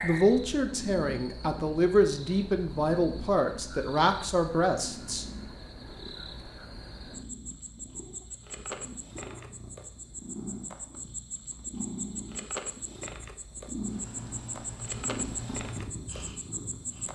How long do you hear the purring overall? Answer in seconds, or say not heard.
17 s.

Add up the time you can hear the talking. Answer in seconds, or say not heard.
5 s.